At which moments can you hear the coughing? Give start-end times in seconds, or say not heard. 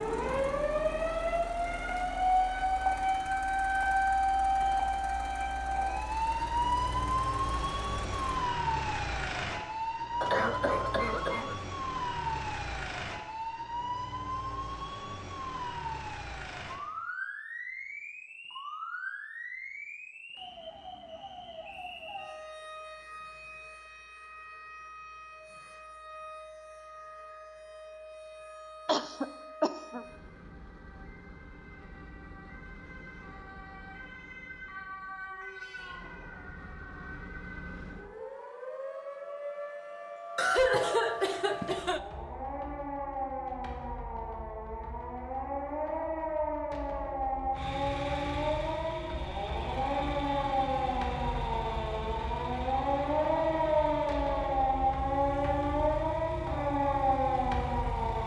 10.2-11.6, 28.9-30.1, 40.4-42.0.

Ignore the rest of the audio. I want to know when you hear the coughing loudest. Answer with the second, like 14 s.
41 s.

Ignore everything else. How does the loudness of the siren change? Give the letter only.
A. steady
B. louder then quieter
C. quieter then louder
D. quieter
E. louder
C.